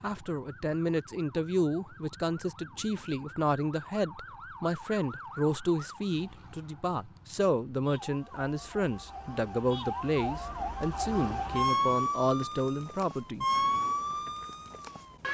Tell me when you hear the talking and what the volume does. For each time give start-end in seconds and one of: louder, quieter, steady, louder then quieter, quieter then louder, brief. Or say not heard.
0.0-13.4 steady.